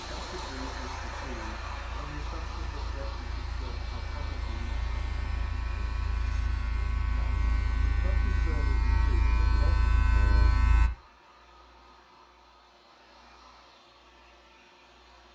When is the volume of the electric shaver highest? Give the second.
10 s.